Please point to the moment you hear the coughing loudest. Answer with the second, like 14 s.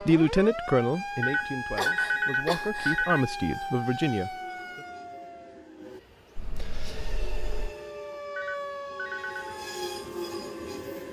2 s.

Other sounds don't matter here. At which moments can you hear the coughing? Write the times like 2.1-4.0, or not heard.
1.7-3.0, 6.3-7.8.